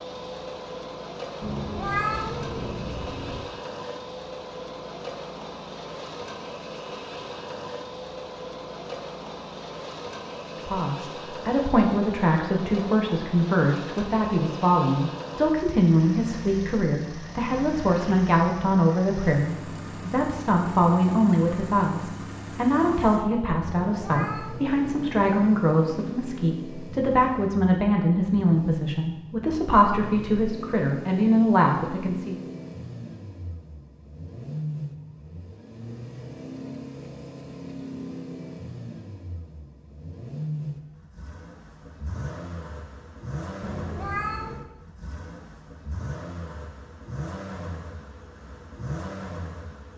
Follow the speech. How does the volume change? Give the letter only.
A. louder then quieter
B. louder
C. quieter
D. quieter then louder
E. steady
E.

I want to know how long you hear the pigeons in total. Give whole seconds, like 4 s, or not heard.
not heard.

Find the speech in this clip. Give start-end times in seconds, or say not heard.
10.7-32.4.